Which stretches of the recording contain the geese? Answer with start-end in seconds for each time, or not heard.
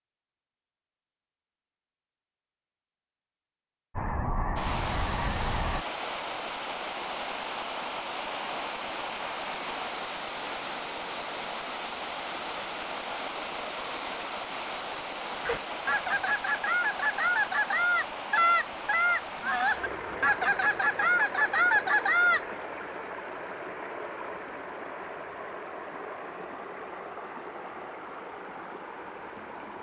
4.0-5.8, 15.4-22.4.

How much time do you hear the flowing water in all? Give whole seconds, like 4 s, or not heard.
25 s.